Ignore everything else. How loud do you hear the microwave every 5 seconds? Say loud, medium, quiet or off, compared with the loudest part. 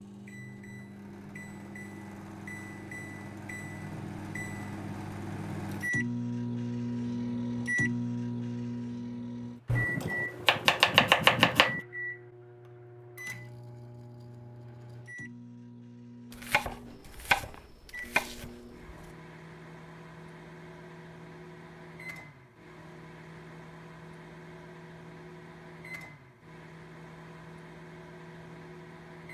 medium, loud, medium, quiet, quiet, quiet.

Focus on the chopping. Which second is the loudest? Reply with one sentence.
The volume of the chopping peaks at 11 seconds.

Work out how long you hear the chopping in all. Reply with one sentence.
The chopping can be heard for 5 seconds in total.